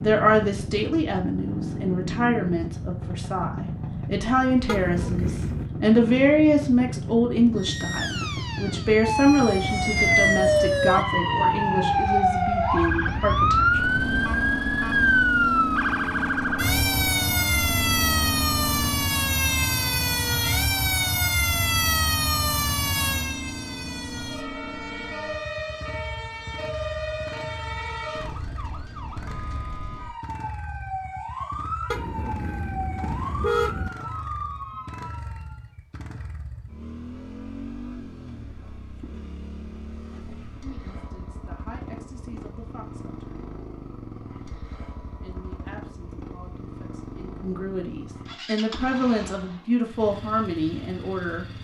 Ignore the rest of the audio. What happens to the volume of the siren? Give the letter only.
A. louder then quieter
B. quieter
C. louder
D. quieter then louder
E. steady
B.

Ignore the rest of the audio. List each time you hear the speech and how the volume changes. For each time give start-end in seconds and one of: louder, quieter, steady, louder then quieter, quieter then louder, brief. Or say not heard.
0.0-13.9 louder then quieter
40.6-43.4 brief
45.2-51.5 louder.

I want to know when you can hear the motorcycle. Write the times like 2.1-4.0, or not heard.
0.0-51.5.